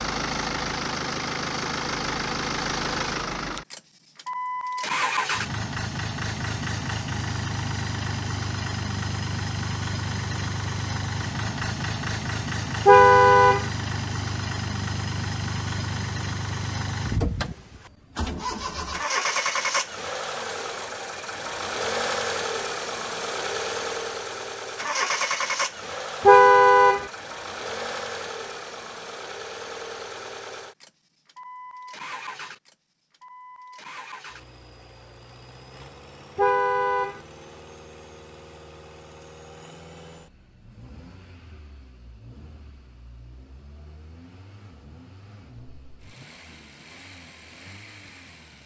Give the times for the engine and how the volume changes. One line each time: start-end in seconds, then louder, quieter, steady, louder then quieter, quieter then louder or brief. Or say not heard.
0.0-48.6 quieter.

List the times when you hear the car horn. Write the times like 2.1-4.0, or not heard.
12.8-13.7, 26.2-27.1, 36.4-37.2.